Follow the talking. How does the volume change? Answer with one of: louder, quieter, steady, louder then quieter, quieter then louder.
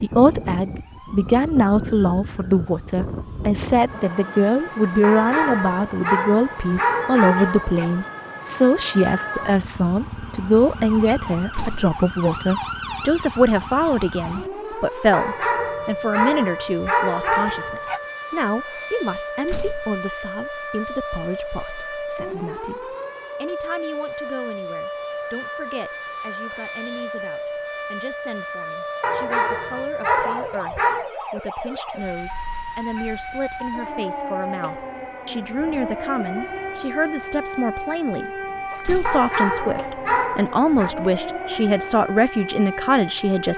quieter then louder.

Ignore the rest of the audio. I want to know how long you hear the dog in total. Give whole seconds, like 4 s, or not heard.
10 s.